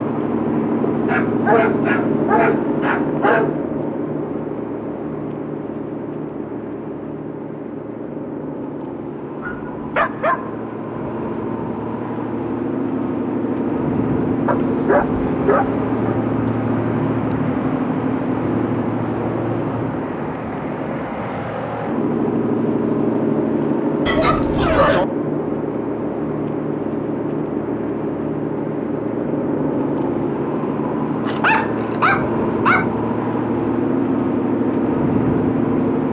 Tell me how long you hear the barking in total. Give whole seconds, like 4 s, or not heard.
8 s.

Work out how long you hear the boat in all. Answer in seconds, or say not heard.
36 s.